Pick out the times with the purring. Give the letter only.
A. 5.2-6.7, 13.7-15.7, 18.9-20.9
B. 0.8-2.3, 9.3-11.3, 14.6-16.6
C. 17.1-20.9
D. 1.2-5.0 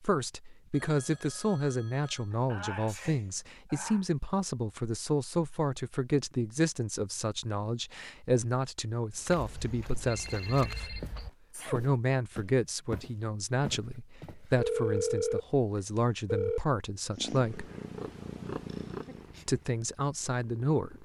C.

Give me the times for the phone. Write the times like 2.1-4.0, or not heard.
0.8-2.3, 9.3-11.3, 14.6-16.6.